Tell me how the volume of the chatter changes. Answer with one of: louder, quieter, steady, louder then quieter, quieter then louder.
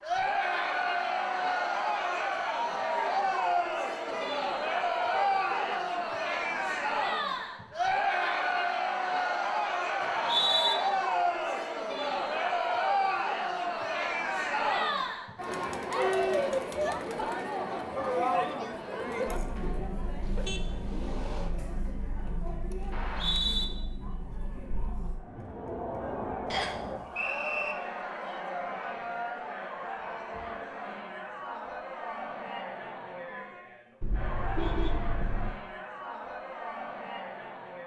quieter.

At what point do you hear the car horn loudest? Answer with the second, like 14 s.
35 s.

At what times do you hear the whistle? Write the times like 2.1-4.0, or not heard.
10.0-10.8, 22.9-23.6, 26.5-27.8.